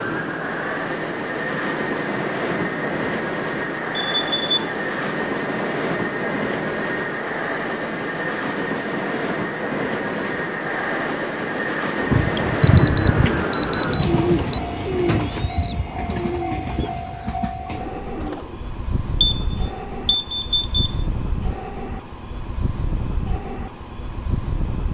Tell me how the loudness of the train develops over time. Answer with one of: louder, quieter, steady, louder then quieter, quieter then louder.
quieter.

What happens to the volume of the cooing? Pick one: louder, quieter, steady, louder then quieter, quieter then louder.
quieter.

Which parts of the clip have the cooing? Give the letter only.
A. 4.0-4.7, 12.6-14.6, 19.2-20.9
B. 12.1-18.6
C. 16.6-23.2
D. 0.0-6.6
B.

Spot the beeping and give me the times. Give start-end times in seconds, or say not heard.
4.0-4.7, 12.6-14.6, 19.2-20.9.